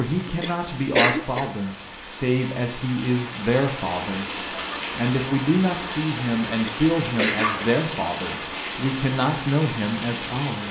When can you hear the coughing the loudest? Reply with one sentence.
The volume of the coughing peaks at 1 second.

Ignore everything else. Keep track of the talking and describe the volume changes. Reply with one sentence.
The volume of the talking stays about the same.